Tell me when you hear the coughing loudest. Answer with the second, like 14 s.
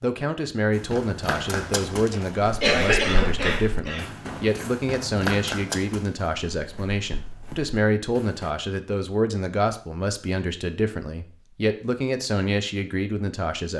3 s.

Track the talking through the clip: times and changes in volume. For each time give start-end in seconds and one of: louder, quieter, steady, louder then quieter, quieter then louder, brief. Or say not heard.
0.0-13.7 steady.